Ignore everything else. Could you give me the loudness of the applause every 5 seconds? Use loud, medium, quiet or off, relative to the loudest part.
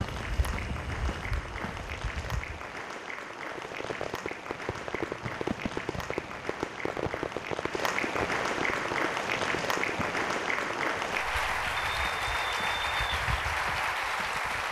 medium, loud, loud.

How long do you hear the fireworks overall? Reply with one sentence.
You can hear the fireworks for 7 seconds altogether.